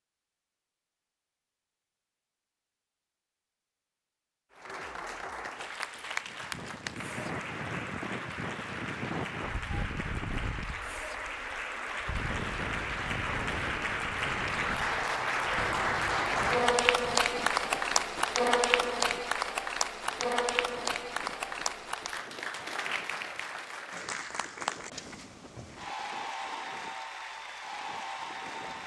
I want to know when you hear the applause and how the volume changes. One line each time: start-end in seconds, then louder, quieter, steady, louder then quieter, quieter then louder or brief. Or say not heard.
4.5-28.8 louder then quieter.